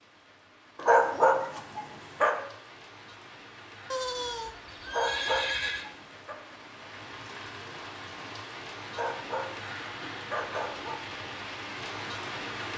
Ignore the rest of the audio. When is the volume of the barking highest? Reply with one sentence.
The loudest moment of the barking is at 1 second.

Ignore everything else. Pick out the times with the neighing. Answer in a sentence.
The neighing can be heard from 3.9 to 5.9 s.